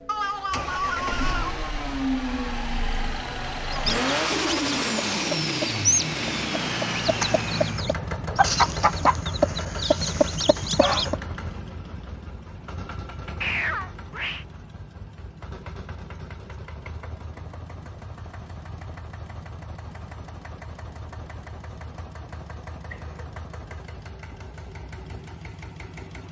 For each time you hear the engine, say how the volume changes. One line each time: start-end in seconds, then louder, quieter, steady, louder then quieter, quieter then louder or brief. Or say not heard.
0.0-26.2 quieter.